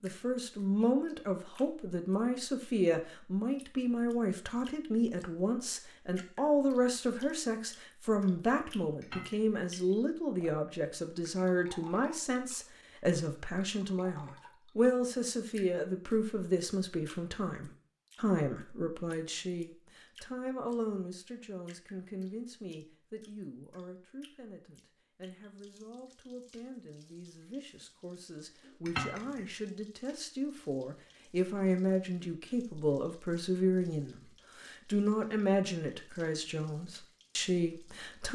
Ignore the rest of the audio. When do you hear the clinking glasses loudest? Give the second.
29 s.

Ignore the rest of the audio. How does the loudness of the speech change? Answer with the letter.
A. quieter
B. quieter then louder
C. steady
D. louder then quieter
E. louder
B.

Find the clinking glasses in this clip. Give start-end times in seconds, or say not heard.
9.0-9.6, 28.9-29.5.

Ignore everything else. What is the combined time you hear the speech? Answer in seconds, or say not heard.
38 s.